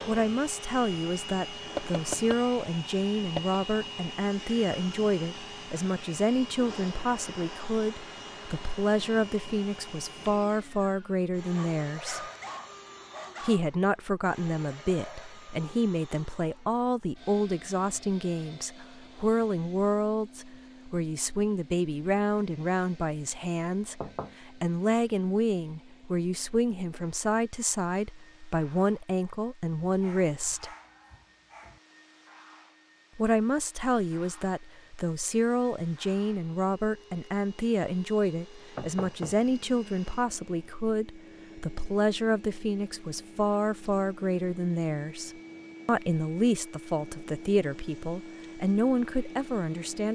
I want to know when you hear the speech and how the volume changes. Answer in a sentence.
The speech can be heard from 0.1 to 12.2 s, at a steady volume; from 13.4 to 30.7 s, at a steady volume; and from 33.1 to 50.0 s, at a steady volume.